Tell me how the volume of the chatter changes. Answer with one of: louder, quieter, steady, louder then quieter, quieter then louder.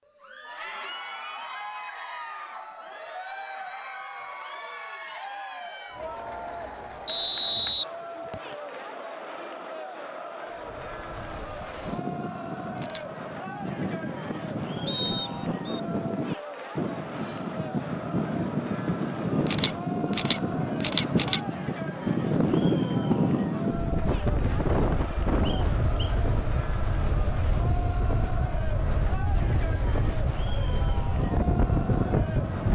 steady.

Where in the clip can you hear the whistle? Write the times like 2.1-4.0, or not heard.
7.0-8.6, 14.8-15.8, 25.4-26.1.